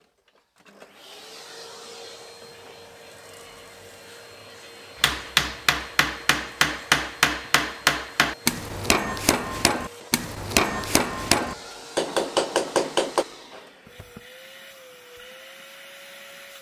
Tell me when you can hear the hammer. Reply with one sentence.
The hammer can be heard from 5.0 to 13.2 s.